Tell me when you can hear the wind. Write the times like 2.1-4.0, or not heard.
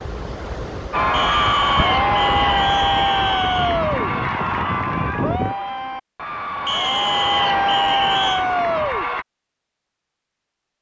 0.0-5.5.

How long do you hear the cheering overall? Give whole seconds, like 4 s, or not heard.
8 s.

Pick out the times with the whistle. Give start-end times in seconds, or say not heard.
1.1-3.8, 6.7-8.4.